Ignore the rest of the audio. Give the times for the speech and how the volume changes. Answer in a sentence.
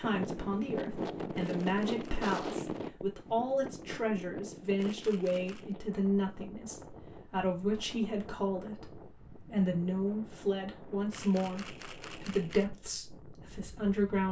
You can hear the speech from 0.0 to 14.2 s, at a steady volume.